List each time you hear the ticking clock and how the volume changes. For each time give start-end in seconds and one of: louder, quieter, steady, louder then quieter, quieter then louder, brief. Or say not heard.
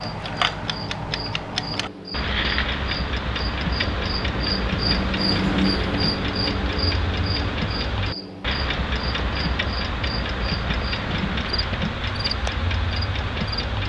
0.0-13.8 steady.